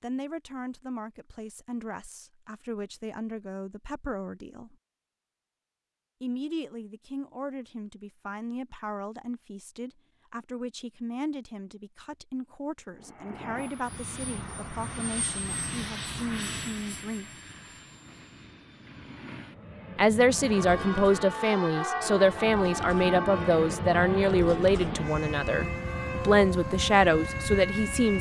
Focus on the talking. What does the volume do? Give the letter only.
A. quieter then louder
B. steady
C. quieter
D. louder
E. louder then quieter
D.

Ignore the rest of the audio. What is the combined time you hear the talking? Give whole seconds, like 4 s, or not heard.
24 s.